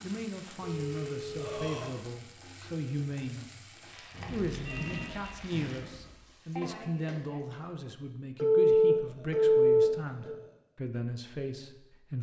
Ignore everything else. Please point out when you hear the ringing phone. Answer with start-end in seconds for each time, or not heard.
0.6-1.5, 4.1-5.3, 8.3-10.3.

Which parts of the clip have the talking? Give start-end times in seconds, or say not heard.
0.0-3.5, 4.3-12.1.